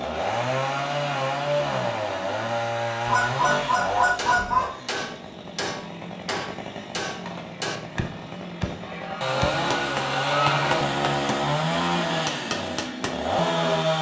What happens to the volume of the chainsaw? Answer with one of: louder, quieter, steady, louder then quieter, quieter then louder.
quieter then louder.